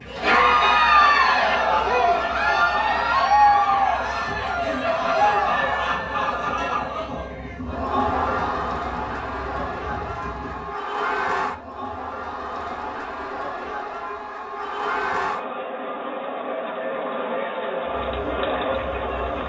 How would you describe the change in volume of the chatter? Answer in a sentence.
The volume of the chatter goes down.